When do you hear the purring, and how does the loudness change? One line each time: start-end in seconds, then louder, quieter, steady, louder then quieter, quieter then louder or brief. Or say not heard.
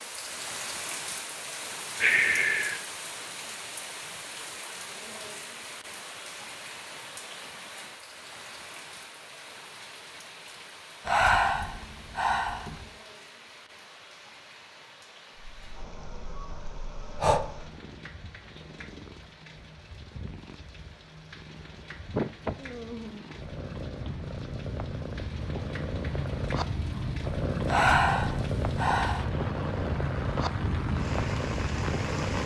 15.3-32.4 louder.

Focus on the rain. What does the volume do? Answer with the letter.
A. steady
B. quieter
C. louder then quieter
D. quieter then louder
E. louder
D.